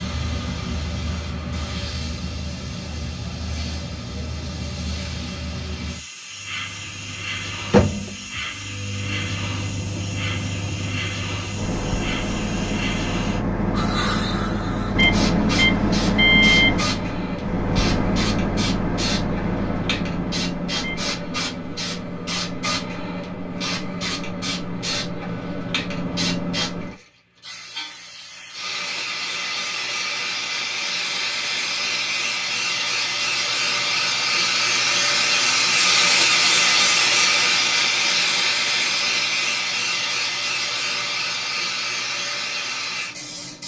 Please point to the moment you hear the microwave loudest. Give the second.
16 s.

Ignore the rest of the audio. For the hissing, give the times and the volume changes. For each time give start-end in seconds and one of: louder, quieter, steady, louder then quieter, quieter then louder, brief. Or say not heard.
0.0-43.6 louder.